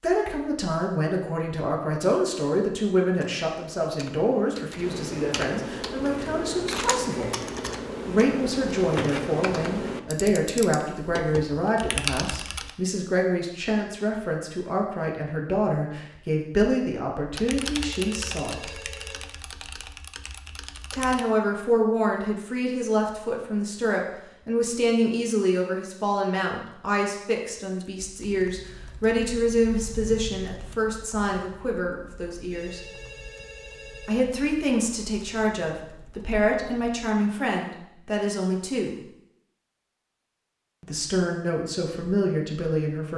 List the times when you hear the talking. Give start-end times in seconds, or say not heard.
0.0-7.3, 8.1-18.8, 20.9-32.8, 34.0-39.0, 40.8-43.1.